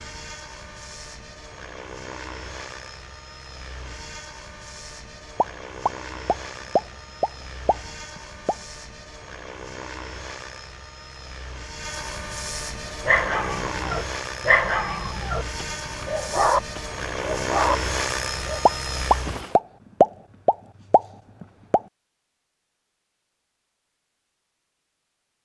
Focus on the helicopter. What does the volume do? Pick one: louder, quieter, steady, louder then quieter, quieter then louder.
louder.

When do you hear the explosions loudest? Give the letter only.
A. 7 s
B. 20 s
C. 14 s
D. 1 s
B.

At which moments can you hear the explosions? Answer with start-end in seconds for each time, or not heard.
5.3-8.6, 18.6-21.8.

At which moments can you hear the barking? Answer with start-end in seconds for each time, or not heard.
13.0-18.6.